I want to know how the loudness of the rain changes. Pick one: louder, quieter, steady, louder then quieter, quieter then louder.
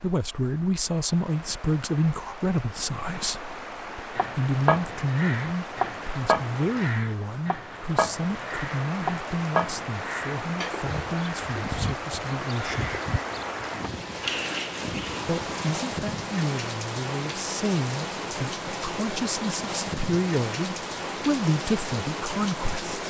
louder.